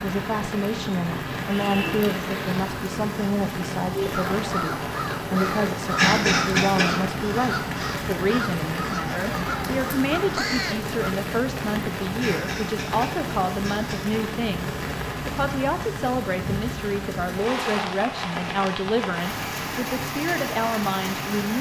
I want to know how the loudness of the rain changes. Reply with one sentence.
The loudness of the rain stays about the same.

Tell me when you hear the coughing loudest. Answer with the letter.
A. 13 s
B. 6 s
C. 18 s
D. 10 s
B.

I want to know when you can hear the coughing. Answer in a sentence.
You can hear the coughing from 6.0 to 7.0 s and from 12.2 to 14.2 s.